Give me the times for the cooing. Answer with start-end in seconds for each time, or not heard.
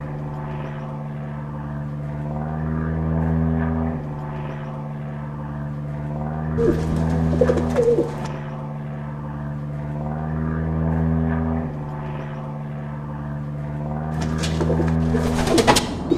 6.5-8.3, 14.1-16.1.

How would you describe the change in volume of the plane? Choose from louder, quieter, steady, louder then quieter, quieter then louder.
steady.